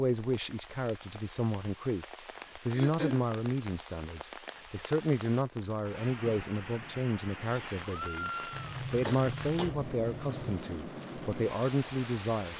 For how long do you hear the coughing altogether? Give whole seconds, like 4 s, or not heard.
3 s.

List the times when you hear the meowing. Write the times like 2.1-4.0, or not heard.
7.8-8.7.